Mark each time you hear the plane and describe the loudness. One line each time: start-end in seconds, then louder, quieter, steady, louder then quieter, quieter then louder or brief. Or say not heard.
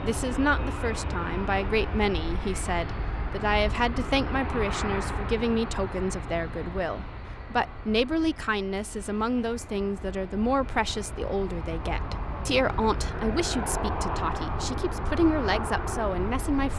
0.0-16.7 quieter then louder.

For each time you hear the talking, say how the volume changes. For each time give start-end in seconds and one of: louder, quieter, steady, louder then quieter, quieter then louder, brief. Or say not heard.
0.0-16.7 steady.